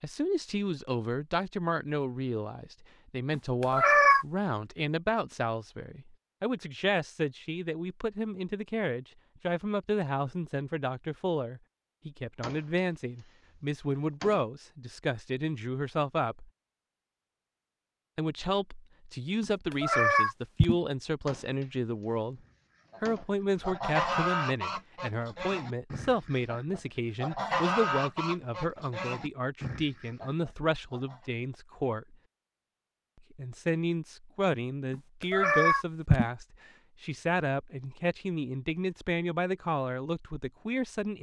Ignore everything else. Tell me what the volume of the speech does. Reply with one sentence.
The volume of the speech stays about the same.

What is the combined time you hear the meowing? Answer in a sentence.
You can hear the meowing for 4 seconds altogether.